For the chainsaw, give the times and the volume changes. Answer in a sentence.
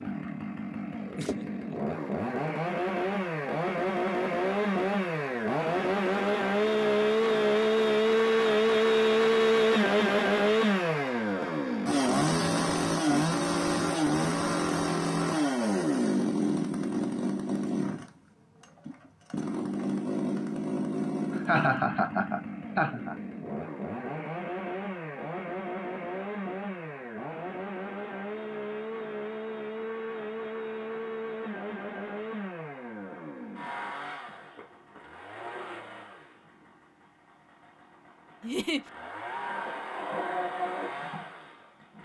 You can hear the chainsaw from 0.0 to 42.0 s, getting quieter.